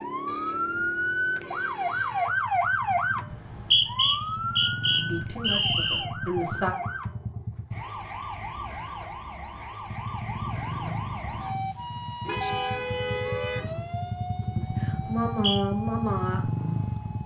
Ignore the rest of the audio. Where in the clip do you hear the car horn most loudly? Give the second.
13 s.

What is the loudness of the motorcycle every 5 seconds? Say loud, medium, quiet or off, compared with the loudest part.
medium, medium, loud, loud.